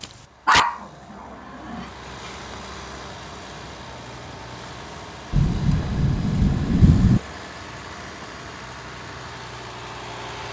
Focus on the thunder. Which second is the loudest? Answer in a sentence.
The volume of the thunder peaks at 7 seconds.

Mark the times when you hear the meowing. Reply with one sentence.
The meowing can't be heard in this clip.